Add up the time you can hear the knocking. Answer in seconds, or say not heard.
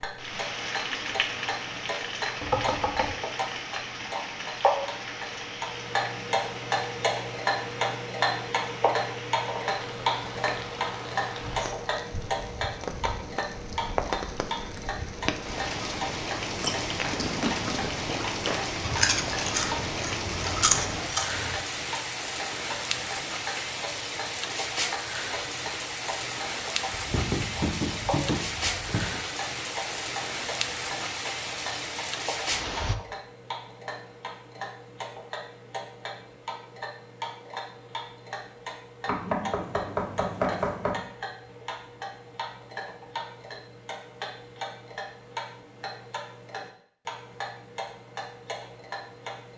5 s.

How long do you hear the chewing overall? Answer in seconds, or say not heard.
5 s.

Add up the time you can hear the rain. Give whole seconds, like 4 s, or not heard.
33 s.